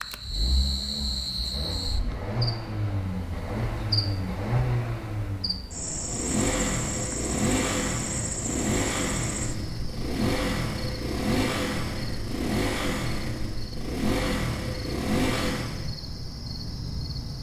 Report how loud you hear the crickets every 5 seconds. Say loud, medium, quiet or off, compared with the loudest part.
loud, loud, medium, loud.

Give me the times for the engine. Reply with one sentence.
The engine can be heard from 0.0 to 16.0 s.